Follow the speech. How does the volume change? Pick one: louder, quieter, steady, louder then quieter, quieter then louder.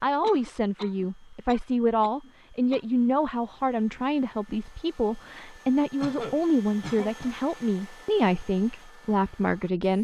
steady.